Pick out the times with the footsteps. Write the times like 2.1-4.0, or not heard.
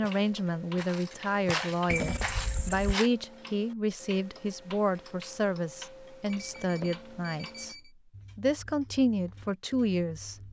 0.0-3.1.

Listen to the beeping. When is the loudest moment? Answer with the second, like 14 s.
2 s.